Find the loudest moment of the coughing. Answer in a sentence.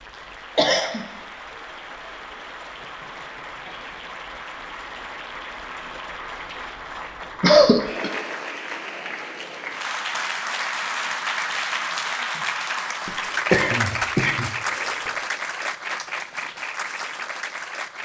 The volume of the coughing peaks at 8 seconds.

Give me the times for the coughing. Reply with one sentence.
You can hear the coughing from 0.6 to 1.1 s, from 7.4 to 8.1 s and from 13.1 to 15.1 s.